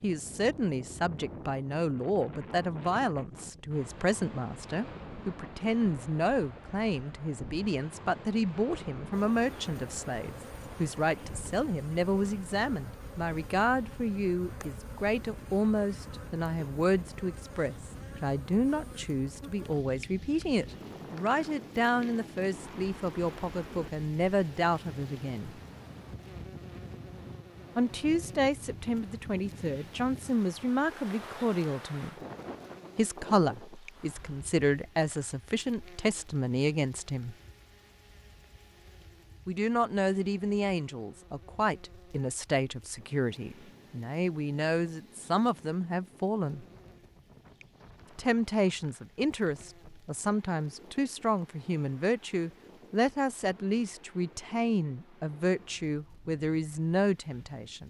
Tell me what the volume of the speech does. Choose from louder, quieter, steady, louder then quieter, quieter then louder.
steady.